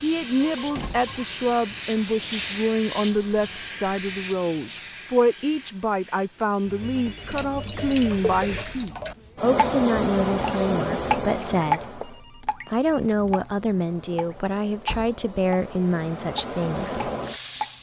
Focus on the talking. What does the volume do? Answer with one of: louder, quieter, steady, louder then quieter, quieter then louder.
steady.